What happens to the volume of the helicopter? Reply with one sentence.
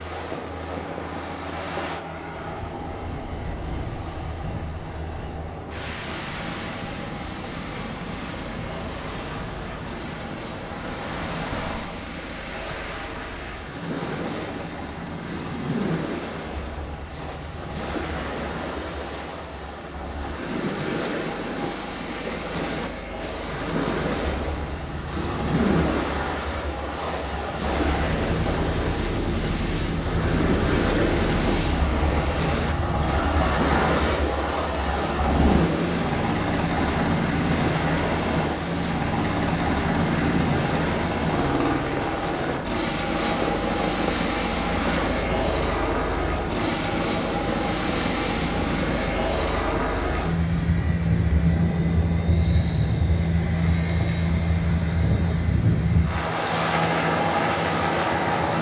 The volume of the helicopter goes up.